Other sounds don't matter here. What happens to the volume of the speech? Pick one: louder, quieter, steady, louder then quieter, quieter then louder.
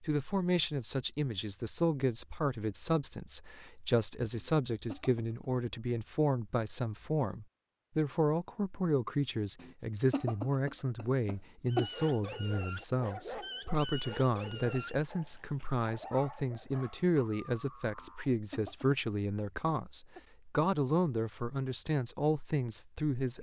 steady.